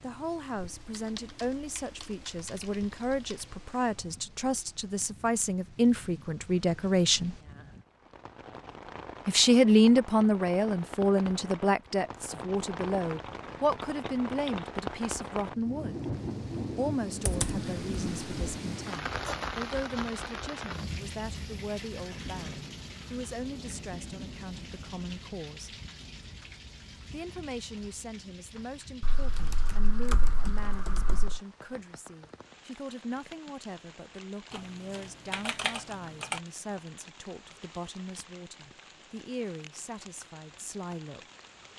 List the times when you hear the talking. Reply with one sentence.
The talking can be heard from 0.0 to 7.3 s, from 9.2 to 16.0 s, from 16.8 to 25.8 s and from 27.1 to 41.2 s.